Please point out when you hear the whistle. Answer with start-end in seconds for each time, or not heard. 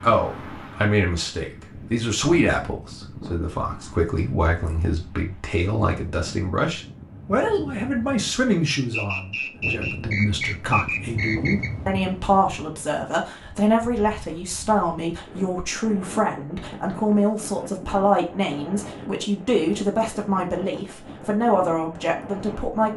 8.9-11.7.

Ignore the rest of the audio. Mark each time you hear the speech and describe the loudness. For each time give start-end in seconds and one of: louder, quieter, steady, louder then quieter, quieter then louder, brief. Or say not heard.
0.0-22.9 steady.